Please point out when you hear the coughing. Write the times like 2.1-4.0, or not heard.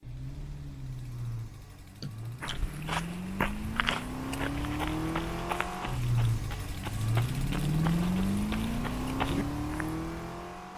2.0-2.6.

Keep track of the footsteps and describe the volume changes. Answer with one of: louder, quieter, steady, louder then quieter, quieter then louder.
quieter.